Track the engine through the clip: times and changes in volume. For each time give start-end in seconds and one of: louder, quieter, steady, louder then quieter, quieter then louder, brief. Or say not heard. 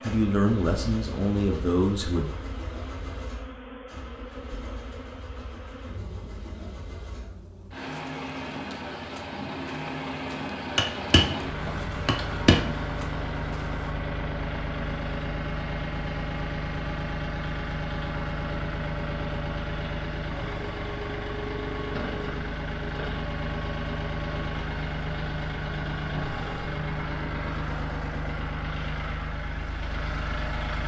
0.0-30.8 louder.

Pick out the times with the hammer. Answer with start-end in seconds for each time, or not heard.
10.8-12.8.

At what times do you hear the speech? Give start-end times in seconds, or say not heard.
0.0-2.3.